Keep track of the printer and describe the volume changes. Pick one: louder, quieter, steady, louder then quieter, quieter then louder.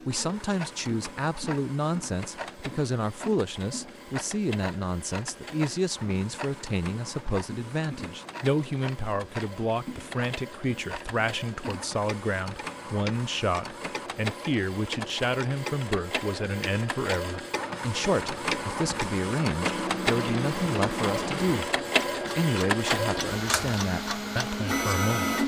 louder.